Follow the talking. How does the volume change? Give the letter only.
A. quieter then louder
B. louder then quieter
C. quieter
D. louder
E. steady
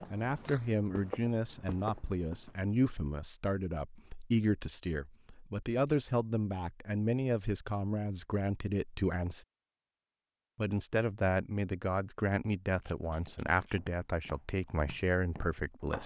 E.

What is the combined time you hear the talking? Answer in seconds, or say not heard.
15 s.